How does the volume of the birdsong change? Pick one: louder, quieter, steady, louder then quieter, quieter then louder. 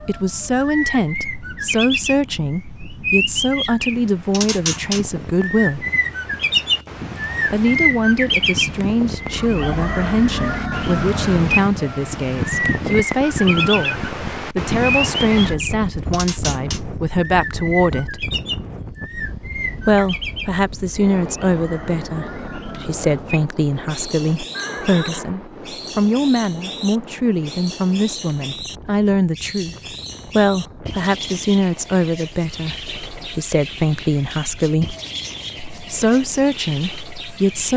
quieter.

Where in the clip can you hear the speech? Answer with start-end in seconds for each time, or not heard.
0.1-5.8, 7.5-18.2, 19.9-35.0, 35.8-37.7.